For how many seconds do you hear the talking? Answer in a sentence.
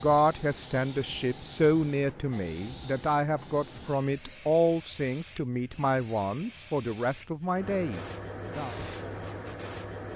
The talking can be heard for 9 seconds in total.